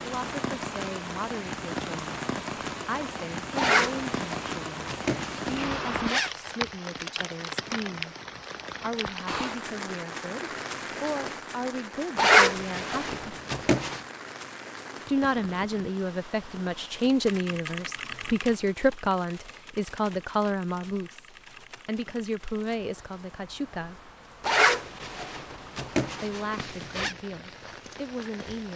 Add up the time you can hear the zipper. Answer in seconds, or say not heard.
7 s.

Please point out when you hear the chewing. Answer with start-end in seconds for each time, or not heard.
not heard.